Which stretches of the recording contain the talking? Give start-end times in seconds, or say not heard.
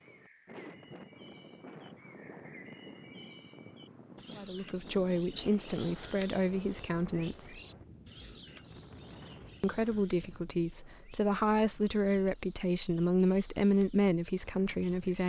4.3-7.6, 9.6-15.2.